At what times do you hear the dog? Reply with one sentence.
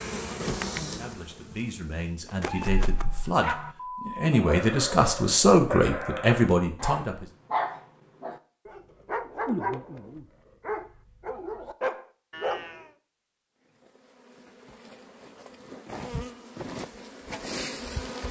The dog can be heard from 2.2 to 12.9 s.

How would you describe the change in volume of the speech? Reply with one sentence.
The loudness of the speech goes up.